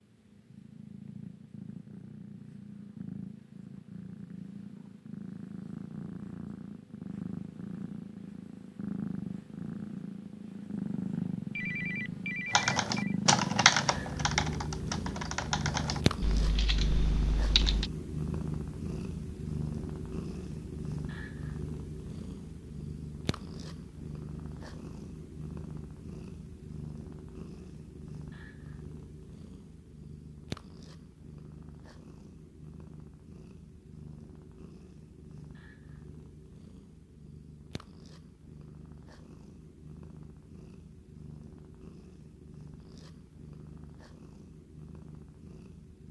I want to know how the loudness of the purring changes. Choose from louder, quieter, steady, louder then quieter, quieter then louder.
louder then quieter.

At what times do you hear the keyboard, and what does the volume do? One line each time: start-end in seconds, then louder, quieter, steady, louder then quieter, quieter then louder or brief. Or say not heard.
12.5-17.9 quieter.